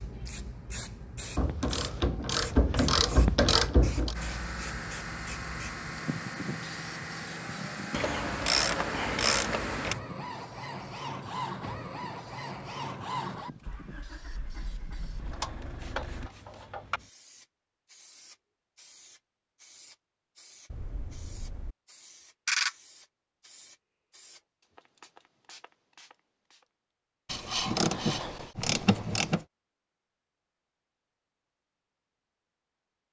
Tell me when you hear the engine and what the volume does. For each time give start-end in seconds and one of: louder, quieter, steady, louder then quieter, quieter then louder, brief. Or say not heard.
4.1-16.3 quieter.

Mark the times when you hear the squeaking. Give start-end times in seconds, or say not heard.
20.7-21.8.